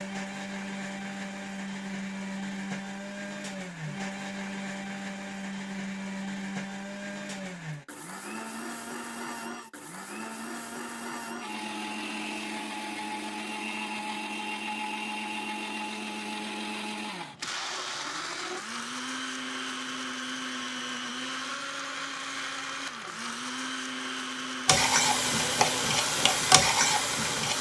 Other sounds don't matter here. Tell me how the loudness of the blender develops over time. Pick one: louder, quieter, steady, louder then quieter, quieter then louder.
steady.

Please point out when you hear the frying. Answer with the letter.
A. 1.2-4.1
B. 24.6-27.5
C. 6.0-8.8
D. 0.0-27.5
B.